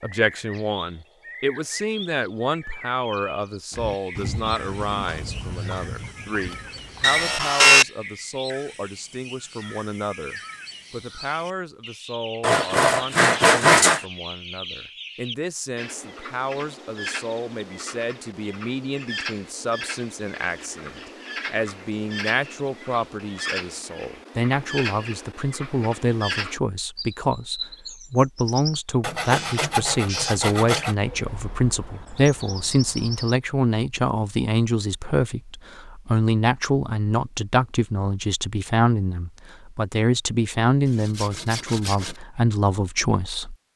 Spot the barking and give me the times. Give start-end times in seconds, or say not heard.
not heard.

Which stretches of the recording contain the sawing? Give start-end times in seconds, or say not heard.
7.0-7.8, 12.4-14.0, 29.0-30.9, 40.9-42.2.